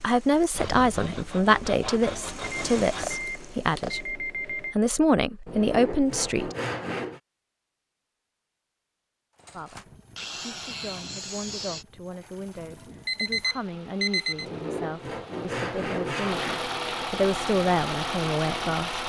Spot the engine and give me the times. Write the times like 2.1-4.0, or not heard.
0.0-4.2, 9.3-19.0.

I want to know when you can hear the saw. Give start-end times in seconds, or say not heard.
0.5-3.2, 5.5-7.2, 10.2-11.8, 14.4-16.7.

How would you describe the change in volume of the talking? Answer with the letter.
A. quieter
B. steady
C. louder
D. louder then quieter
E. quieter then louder
E.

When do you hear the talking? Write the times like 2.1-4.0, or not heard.
0.0-6.5, 9.5-19.0.